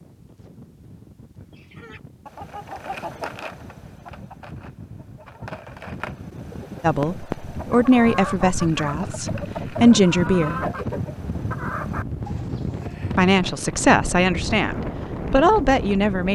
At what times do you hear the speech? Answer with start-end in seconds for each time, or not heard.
6.8-10.6, 13.2-16.3.